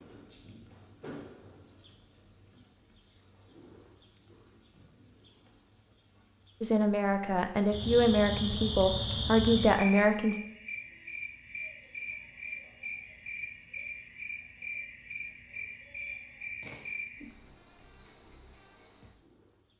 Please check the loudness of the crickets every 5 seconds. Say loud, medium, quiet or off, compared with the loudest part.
loud, loud, medium, medium.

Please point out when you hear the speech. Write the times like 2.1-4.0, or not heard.
6.6-10.4.